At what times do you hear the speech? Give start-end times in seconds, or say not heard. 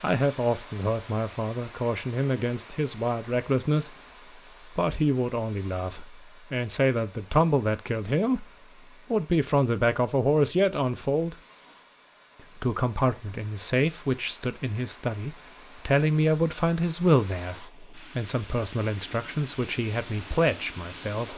0.0-4.0, 4.7-8.4, 9.1-11.3, 12.6-21.3.